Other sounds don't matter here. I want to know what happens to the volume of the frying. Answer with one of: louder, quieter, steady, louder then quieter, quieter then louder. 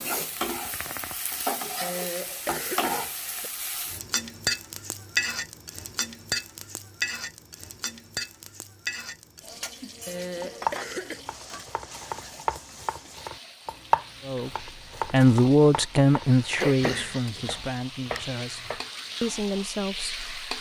quieter then louder.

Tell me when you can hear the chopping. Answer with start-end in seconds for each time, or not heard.
10.4-18.9.